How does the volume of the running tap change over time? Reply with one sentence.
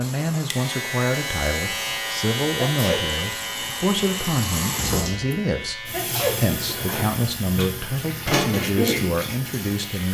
The loudness of the running tap goes up.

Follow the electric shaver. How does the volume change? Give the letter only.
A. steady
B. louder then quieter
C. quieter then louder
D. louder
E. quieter
E.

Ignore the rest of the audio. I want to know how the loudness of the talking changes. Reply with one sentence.
The loudness of the talking stays about the same.